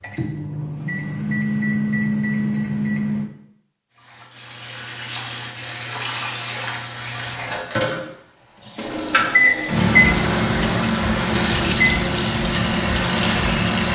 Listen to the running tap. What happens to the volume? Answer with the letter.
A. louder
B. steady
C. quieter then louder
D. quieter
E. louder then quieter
A.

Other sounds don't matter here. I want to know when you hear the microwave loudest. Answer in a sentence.
The volume of the microwave peaks at 10 seconds.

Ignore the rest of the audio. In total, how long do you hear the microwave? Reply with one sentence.
The microwave can be heard for 8 seconds in total.